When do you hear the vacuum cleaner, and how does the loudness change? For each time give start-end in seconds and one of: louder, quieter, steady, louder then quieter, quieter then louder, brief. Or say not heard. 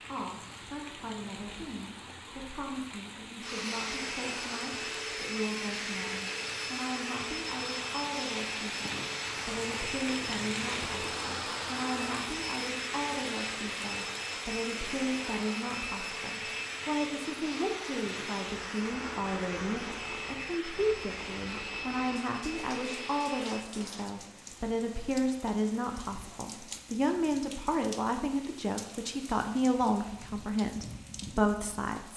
3.4-23.7 steady.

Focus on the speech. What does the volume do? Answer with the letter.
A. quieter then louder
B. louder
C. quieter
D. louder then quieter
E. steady
B.